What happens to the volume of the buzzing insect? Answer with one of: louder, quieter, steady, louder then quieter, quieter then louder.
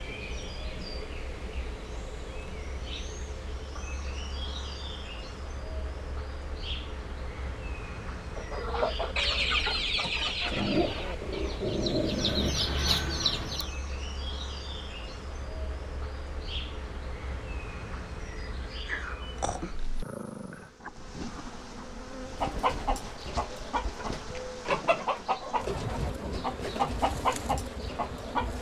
steady.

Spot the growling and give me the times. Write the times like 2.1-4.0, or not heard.
10.5-12.5, 18.9-20.7.